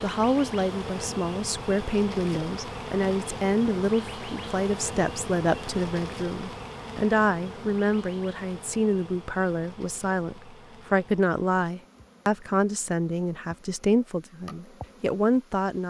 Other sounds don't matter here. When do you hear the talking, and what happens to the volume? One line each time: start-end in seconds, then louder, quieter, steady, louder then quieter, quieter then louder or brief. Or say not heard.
0.0-15.8 steady.